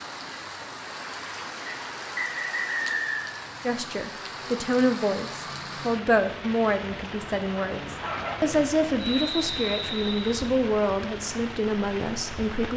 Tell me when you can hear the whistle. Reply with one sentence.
You can hear the whistle from 1.6 to 3.3 s and from 8.9 to 10.5 s.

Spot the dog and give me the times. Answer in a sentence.
You can hear the dog from 7.7 to 8.7 s.